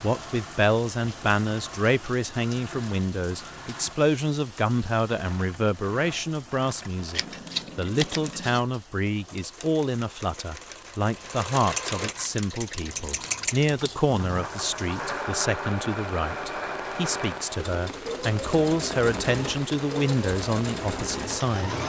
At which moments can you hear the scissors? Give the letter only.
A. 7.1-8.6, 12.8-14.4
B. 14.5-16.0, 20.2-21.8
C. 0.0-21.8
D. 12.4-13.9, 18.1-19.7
A.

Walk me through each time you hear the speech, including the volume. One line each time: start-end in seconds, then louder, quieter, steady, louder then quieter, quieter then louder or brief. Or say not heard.
0.0-21.8 steady.